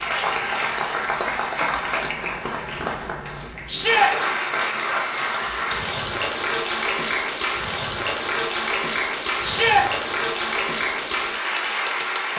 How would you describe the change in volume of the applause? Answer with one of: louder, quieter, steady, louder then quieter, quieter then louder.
steady.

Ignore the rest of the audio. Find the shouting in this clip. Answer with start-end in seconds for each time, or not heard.
3.6-4.1, 9.4-9.8.